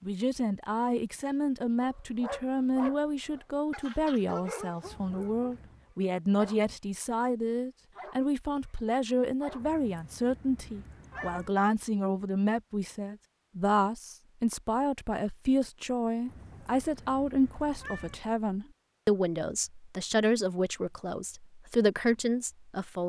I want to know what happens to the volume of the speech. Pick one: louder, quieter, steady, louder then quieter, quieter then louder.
steady.